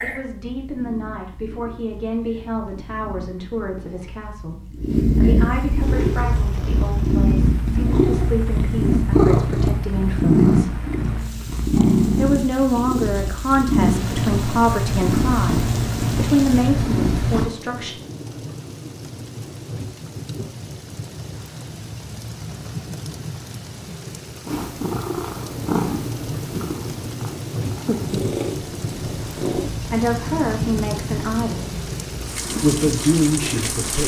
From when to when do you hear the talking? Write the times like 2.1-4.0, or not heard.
0.0-10.8, 12.2-17.9, 29.9-31.7, 32.5-34.0.